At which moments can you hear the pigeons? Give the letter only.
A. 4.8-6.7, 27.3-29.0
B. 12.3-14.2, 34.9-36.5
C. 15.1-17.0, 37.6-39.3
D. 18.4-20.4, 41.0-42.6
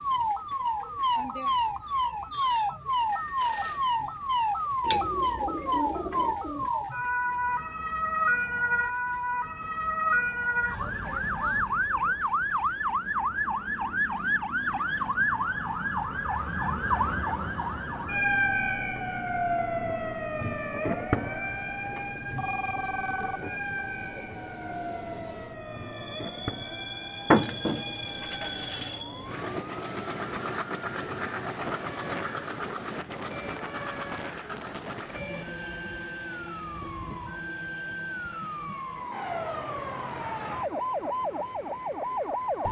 A.